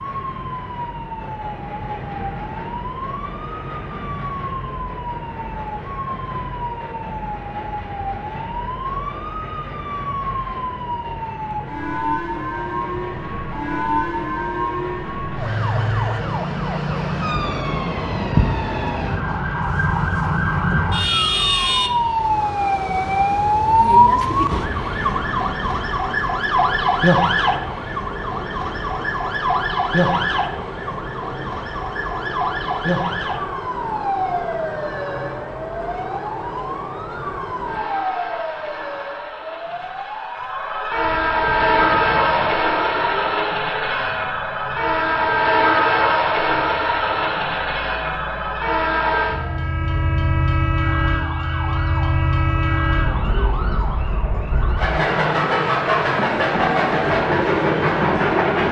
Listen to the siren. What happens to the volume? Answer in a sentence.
The volume of the siren goes up, then down.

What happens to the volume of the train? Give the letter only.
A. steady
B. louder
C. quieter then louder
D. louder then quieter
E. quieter
B.